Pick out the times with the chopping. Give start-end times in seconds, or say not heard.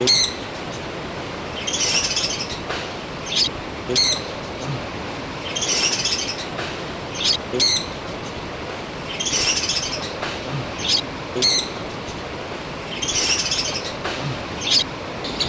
not heard.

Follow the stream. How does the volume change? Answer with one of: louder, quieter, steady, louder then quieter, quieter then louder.
steady.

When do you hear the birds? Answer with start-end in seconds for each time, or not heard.
0.0-15.4.